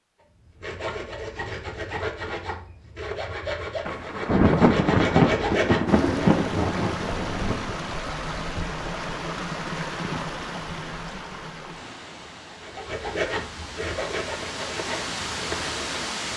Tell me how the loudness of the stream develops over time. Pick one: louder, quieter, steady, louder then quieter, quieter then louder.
quieter then louder.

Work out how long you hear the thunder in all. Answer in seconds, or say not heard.
4 s.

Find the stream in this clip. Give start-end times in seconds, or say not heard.
5.8-16.3.